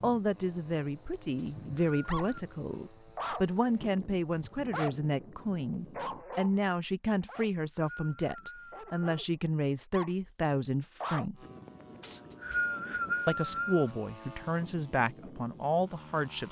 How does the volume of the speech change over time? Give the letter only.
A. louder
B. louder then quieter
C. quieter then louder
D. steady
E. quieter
D.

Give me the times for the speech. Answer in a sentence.
The speech can be heard from 0.0 to 11.4 s and from 13.2 to 16.4 s.